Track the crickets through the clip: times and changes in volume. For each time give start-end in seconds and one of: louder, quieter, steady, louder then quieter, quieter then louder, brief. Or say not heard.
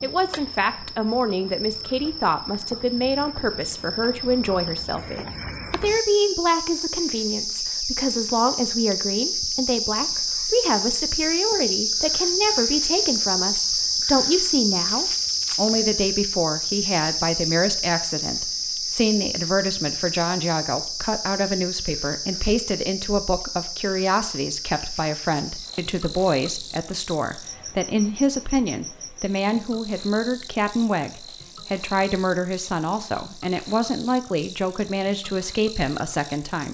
0.0-36.6 louder then quieter.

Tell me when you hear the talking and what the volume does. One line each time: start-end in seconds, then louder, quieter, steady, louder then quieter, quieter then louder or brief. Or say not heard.
0.0-36.6 steady.